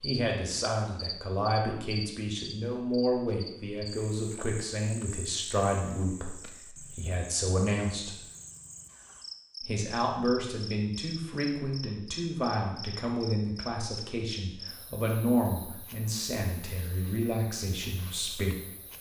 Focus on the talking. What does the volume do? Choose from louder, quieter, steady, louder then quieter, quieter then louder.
steady.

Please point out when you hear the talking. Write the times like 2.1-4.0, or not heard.
0.0-8.2, 9.6-18.6.